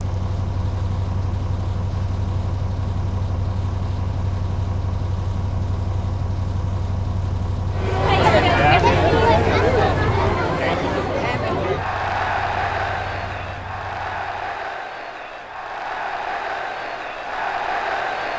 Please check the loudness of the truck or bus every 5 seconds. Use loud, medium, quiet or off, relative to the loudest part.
loud, loud, medium, off.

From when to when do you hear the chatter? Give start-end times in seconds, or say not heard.
7.7-18.3.